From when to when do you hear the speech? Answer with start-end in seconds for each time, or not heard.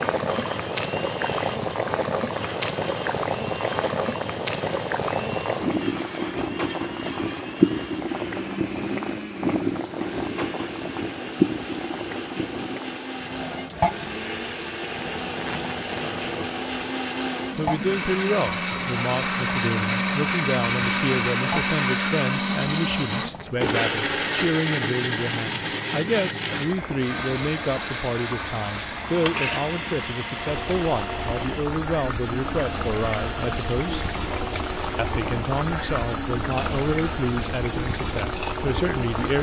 17.6-34.0, 35.0-39.3.